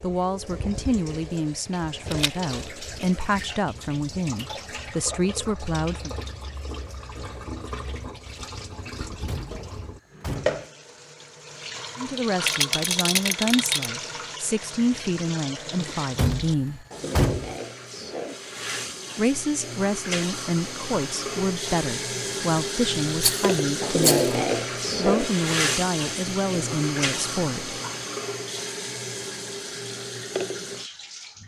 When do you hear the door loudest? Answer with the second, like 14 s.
17 s.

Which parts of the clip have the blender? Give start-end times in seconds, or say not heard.
not heard.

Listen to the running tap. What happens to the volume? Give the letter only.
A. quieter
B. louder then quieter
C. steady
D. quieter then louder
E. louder
E.